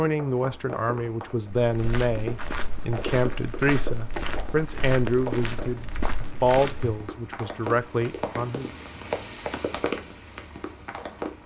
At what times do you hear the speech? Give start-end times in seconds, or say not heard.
0.0-8.7.